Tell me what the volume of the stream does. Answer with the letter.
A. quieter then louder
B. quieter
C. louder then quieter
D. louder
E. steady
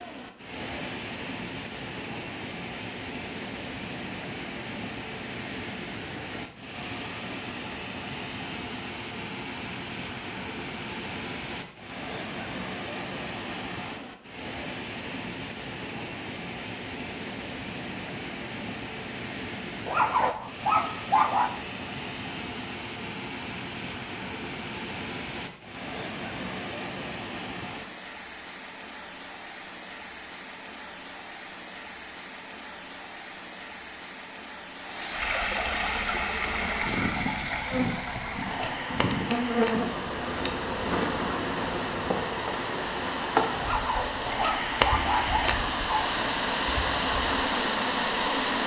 D.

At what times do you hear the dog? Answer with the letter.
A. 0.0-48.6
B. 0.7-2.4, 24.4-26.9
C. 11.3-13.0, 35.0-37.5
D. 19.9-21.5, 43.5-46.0
D.